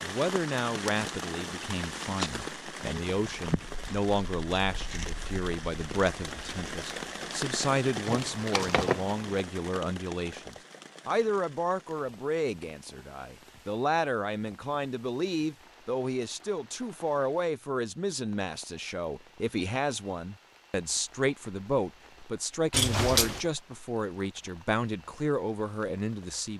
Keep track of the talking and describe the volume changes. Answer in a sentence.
The loudness of the talking stays about the same.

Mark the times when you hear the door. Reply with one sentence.
The door can be heard from 8.1 to 9.4 s and from 22.7 to 23.4 s.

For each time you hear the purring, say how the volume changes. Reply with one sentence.
You can't hear the purring here.